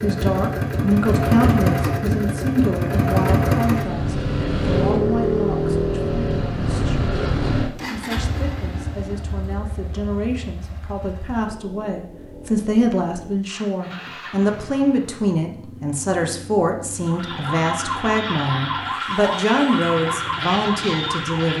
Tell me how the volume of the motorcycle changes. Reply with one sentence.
The loudness of the motorcycle goes down.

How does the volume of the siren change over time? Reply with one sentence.
The volume of the siren stays about the same.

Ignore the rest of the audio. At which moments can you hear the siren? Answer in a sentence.
The siren can be heard from 16.9 to 21.5 s.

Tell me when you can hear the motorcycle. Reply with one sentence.
You can hear the motorcycle from 0.0 to 21.5 s.